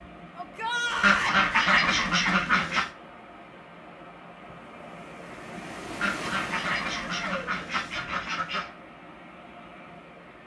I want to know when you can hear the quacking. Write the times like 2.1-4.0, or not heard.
1.0-2.9, 6.0-8.7.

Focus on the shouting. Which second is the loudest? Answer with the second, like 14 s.
1 s.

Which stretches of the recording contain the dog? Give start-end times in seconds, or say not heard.
not heard.